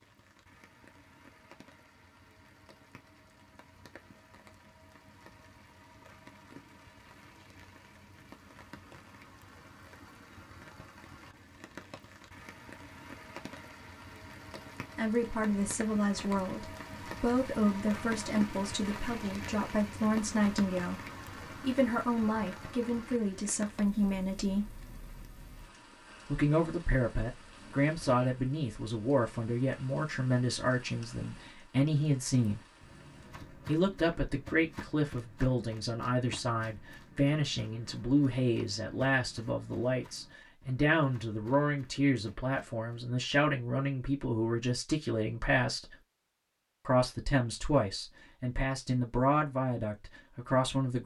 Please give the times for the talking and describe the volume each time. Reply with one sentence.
You can hear the talking from 14.9 to 24.8 s, at a steady volume; from 26.2 to 32.6 s, at a steady volume; from 33.6 to 46.0 s, at a steady volume; and from 46.9 to 51.0 s, getting quieter then louder.